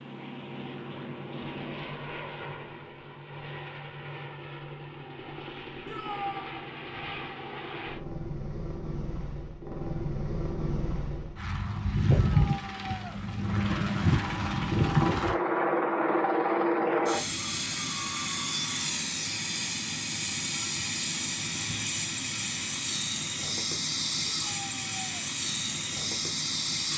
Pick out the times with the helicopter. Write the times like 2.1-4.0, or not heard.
0.0-26.9.